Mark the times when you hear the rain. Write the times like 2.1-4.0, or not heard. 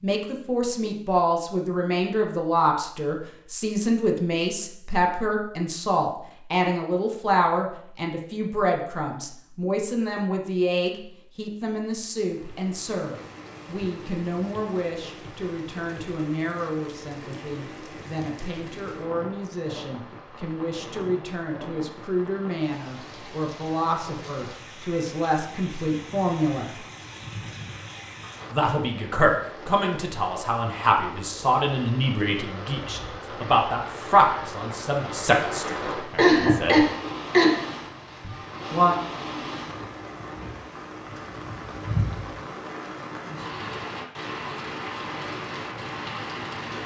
12.1-46.8.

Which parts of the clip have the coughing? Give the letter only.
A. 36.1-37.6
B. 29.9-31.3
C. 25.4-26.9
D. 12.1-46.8
A.